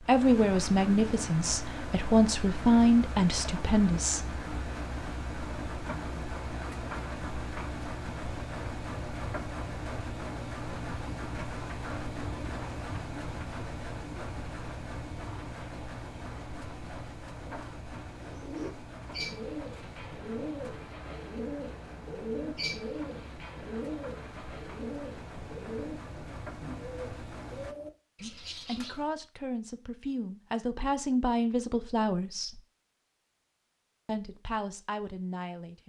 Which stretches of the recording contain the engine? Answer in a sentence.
The engine can be heard from 0.0 to 27.8 s.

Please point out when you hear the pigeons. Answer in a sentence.
The pigeons can be heard from 18.1 to 29.1 s.